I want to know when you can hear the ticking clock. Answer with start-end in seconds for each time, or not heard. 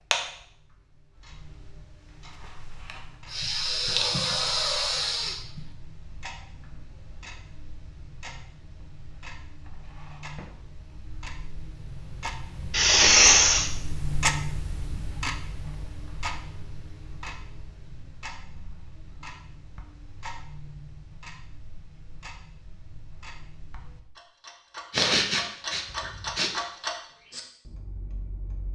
0.0-28.7.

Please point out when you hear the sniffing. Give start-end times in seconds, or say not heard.
3.3-5.6, 12.7-13.7, 24.9-26.5.